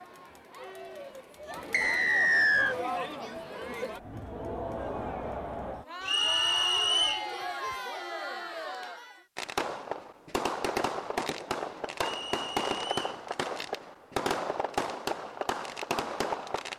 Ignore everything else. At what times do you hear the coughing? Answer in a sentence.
You can't hear the coughing here.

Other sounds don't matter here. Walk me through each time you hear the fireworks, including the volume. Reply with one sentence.
The fireworks can be heard from 9.3 to 16.7 s, at a steady volume.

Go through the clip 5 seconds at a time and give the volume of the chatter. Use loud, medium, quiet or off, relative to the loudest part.
loud, loud, off, off.